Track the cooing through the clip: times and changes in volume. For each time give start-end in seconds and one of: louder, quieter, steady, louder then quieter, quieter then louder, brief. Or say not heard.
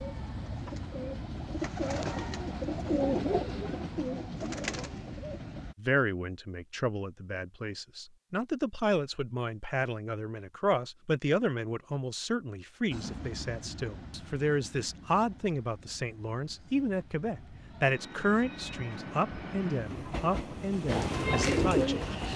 0.0-5.7 louder then quieter
20.9-22.3 brief.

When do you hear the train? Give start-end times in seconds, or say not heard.
0.0-5.8, 12.9-22.3.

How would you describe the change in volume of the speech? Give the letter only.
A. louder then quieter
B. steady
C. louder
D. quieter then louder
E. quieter
B.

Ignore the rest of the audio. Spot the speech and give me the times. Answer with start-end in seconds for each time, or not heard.
5.8-22.3.